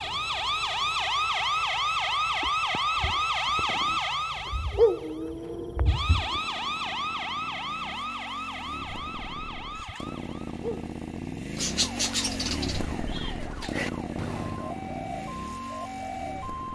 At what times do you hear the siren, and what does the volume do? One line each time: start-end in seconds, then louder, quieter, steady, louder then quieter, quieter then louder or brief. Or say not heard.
0.0-16.7 quieter.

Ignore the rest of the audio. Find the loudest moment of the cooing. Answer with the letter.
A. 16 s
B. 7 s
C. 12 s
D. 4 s
C.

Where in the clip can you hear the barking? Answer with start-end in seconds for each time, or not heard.
not heard.